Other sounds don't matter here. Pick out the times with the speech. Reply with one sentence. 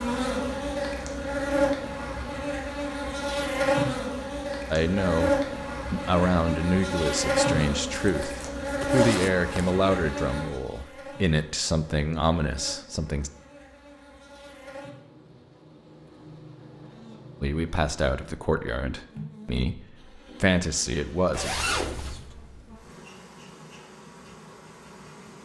The speech can be heard from 4.7 to 13.3 s and from 17.4 to 21.6 s.